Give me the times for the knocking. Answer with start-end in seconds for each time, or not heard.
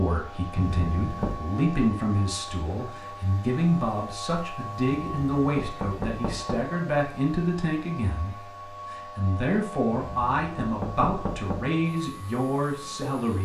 0.6-1.4, 4.9-6.7, 9.9-11.7.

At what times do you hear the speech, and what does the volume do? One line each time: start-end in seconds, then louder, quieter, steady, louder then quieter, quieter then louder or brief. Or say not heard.
0.0-13.4 steady.